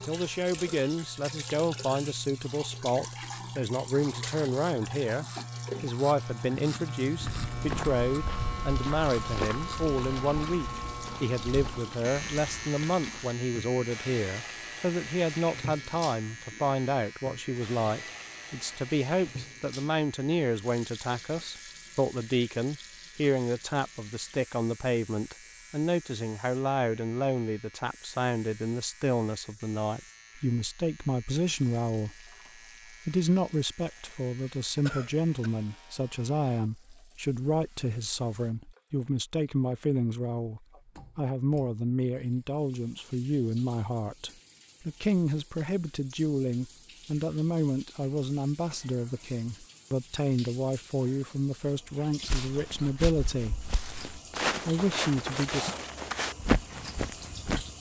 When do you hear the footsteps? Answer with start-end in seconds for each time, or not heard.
7.2-12.7, 52.2-57.7.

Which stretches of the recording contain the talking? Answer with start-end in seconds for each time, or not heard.
0.0-32.2, 32.9-53.7, 54.5-55.8.